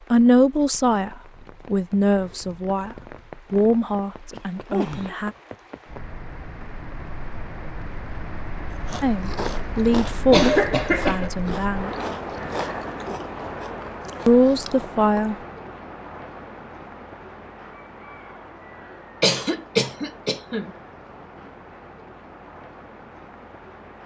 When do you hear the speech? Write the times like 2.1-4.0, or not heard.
0.1-5.3, 9.0-11.9, 14.2-15.3.